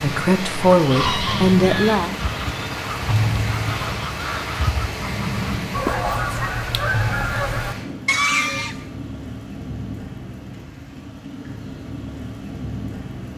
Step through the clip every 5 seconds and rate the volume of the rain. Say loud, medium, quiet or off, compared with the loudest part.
loud, loud, medium.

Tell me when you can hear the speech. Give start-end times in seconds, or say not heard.
0.0-2.1.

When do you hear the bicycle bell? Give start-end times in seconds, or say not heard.
not heard.